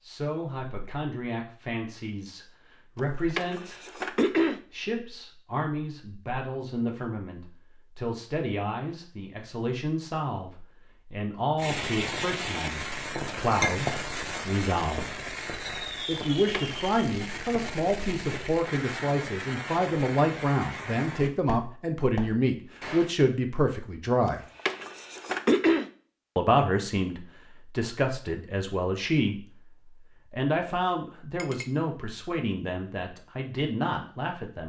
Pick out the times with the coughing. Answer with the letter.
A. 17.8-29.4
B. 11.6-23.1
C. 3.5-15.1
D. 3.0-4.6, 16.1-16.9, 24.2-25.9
D.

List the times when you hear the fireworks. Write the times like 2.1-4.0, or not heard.
11.6-23.1.